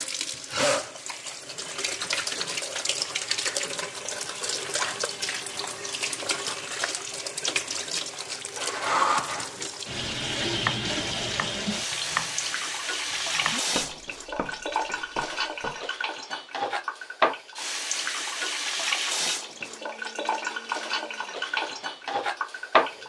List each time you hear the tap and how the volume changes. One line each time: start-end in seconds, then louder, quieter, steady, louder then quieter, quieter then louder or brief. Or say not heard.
0.0-23.0 steady.